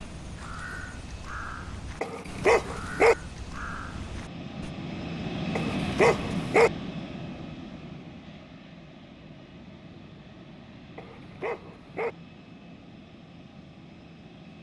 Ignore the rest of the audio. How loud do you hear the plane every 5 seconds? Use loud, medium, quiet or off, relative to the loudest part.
medium, loud, quiet.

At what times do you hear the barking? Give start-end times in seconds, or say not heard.
2.0-3.1, 5.5-6.7, 10.9-12.2.